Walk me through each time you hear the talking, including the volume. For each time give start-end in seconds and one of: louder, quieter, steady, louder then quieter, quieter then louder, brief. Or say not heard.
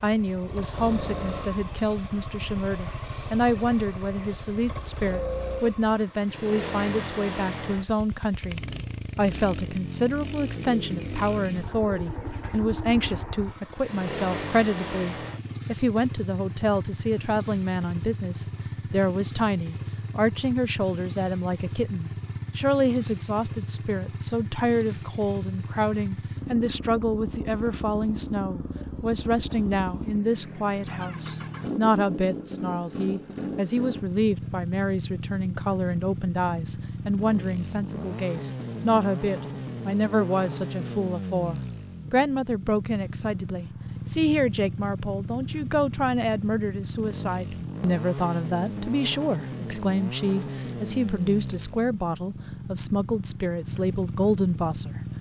0.0-55.0 steady.